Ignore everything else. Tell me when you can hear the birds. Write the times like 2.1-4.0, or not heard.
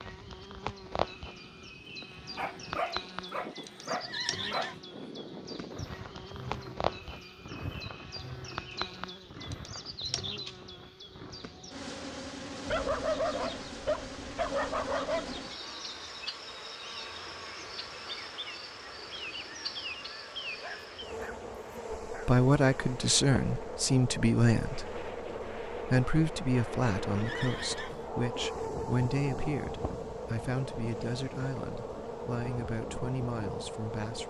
not heard.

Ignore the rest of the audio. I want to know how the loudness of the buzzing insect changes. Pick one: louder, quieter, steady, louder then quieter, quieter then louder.
steady.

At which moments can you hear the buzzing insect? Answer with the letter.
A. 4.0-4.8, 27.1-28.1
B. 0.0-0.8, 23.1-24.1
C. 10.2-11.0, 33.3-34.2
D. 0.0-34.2
D.